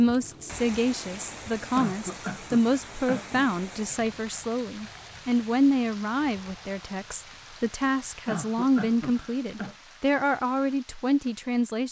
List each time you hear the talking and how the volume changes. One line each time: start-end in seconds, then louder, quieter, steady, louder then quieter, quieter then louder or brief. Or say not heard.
0.0-11.8 steady.